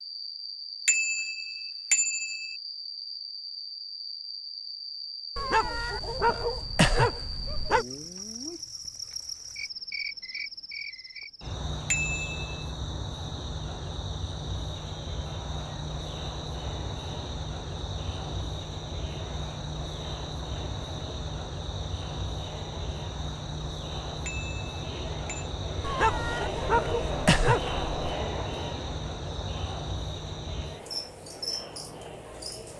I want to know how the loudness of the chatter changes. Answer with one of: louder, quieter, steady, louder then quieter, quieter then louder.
louder then quieter.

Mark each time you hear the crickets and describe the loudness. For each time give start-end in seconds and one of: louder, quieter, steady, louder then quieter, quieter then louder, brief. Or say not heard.
0.0-32.7 steady.